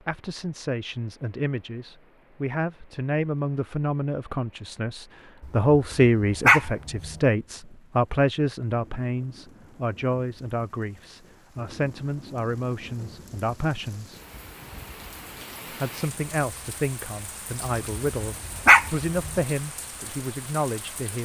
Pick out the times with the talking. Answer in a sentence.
The talking can be heard from 0.1 to 14.2 s and from 15.7 to 21.1 s.